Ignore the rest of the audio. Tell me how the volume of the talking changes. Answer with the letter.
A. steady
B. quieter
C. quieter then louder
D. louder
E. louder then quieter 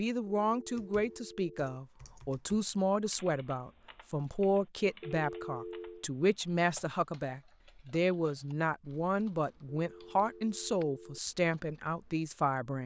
A.